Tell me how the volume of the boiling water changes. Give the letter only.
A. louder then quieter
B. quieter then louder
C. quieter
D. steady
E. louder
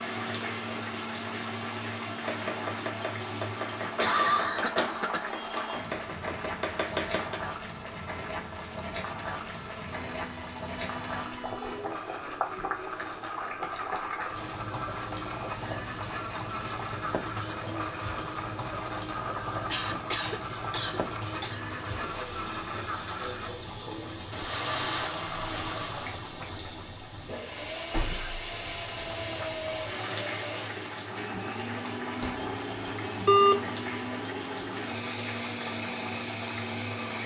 D.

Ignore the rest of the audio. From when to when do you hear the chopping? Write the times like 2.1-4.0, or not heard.
2.2-7.4.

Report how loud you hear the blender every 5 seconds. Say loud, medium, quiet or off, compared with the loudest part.
loud, medium, loud, loud, loud, loud, loud, loud.